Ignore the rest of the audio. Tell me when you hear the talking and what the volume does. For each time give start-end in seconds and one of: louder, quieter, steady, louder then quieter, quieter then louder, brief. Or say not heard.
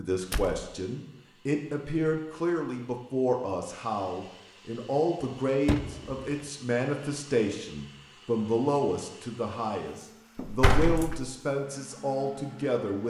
0.0-13.0 steady.